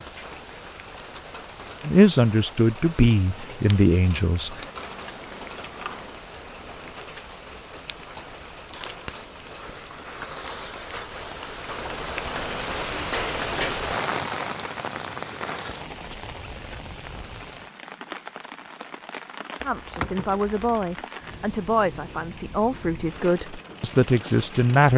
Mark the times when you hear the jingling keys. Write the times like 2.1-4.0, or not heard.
4.7-6.2, 8.7-9.8, 19.6-21.1.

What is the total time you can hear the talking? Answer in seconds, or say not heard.
8 s.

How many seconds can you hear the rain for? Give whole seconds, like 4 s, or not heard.
25 s.